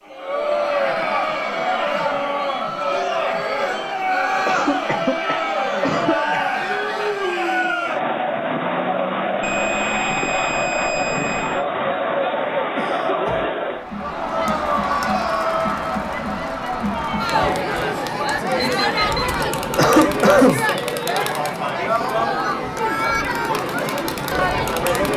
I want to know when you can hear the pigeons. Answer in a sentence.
You can't hear the pigeons here.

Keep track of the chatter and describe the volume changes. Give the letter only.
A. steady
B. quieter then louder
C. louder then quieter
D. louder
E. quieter
A.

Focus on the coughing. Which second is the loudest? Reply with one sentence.
The loudest moment of the coughing is at 20 seconds.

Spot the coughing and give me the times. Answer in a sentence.
You can hear the coughing from 4.5 to 6.5 s, from 12.8 to 13.4 s and from 19.7 to 20.6 s.